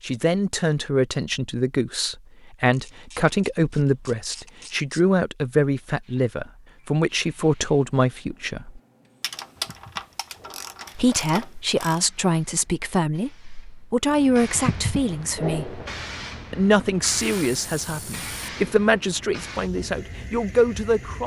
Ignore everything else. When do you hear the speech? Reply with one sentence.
You can hear the speech from 0.0 to 8.8 s, from 10.9 to 15.8 s and from 16.5 to 21.2 s.